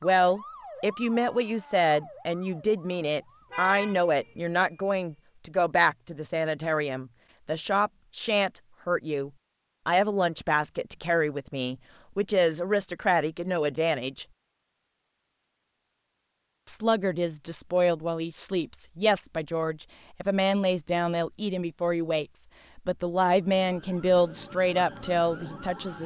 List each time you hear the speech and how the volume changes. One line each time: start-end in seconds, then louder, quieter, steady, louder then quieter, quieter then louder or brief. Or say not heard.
0.0-14.2 steady
16.6-26.0 steady.